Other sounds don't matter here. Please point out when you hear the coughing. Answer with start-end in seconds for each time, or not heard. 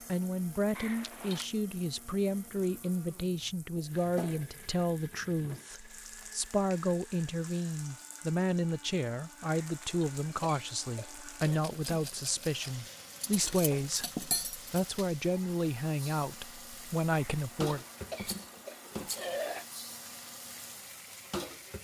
0.7-1.4, 9.4-11.6, 17.1-19.6.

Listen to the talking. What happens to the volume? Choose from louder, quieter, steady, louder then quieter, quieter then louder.
steady.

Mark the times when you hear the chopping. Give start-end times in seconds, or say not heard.
not heard.